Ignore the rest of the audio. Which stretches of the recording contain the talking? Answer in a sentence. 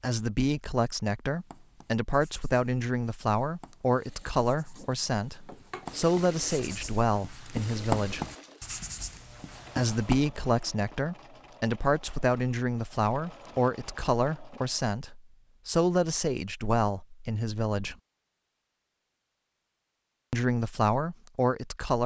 The talking can be heard from 0.0 to 8.2 s, from 9.8 to 17.9 s and from 20.3 to 22.0 s.